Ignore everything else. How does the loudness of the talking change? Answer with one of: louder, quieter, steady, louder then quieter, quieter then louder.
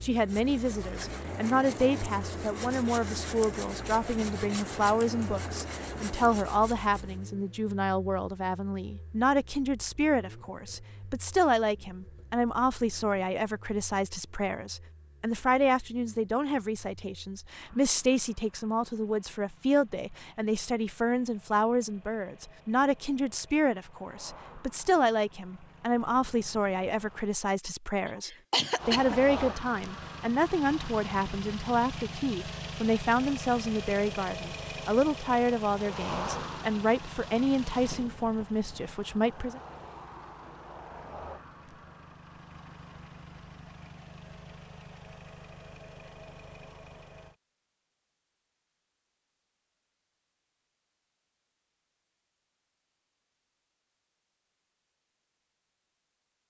steady.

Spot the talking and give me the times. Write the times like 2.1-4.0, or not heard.
0.0-39.6.